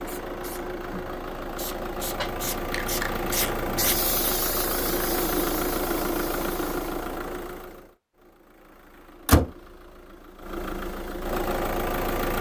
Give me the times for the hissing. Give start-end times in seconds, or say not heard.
0.0-7.0.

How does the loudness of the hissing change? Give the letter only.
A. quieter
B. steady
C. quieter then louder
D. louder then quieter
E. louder
D.